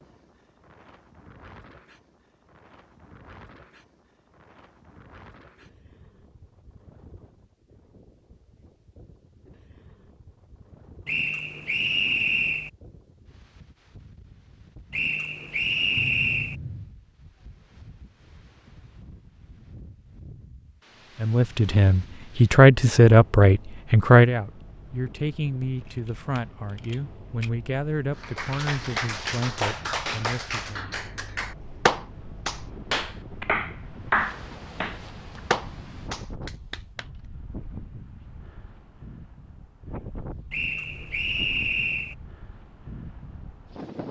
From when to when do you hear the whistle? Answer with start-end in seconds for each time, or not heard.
11.1-12.7, 14.9-16.6, 40.5-42.1.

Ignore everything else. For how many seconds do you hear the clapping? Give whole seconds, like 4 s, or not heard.
9 s.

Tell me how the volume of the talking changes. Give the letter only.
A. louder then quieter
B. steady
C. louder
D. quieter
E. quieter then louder
D.